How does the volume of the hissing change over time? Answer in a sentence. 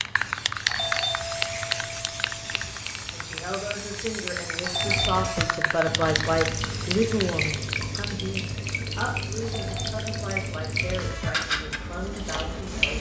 The volume of the hissing goes down.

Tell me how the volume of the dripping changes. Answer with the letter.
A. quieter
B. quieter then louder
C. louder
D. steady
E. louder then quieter
C.